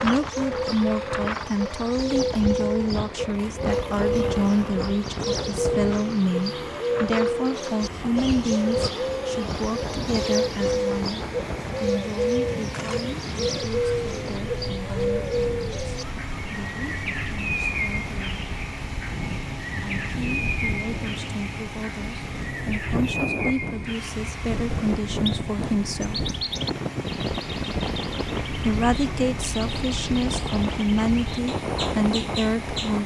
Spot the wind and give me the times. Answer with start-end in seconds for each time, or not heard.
0.0-33.0.